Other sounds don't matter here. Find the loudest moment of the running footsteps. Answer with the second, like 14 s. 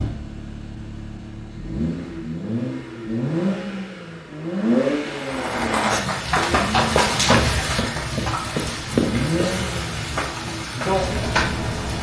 9 s.